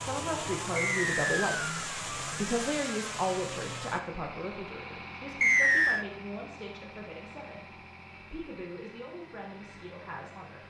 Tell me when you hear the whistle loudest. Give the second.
6 s.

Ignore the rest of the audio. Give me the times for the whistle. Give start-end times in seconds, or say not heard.
0.8-1.9, 5.4-6.0.